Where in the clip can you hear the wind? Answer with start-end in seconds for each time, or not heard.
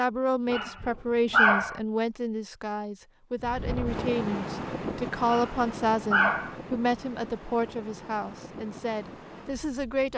3.4-10.1.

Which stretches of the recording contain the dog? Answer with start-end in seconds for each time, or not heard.
0.5-1.8, 5.2-6.5.